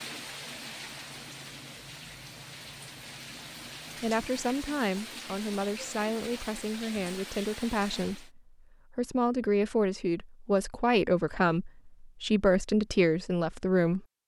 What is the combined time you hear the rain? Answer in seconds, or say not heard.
8 s.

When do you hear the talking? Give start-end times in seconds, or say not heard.
4.0-14.1.